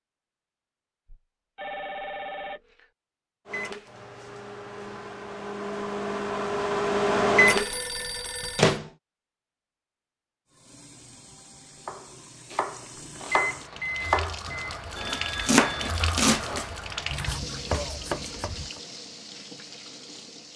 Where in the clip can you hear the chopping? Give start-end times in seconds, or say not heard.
11.8-18.8.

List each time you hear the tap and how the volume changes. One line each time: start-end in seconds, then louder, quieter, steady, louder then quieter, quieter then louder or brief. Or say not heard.
10.4-20.5 louder then quieter.